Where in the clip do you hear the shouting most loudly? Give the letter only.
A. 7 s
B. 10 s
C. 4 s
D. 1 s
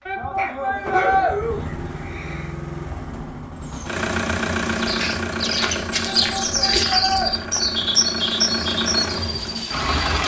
D.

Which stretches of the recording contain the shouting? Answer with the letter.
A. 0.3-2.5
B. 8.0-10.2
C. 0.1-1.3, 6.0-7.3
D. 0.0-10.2
C.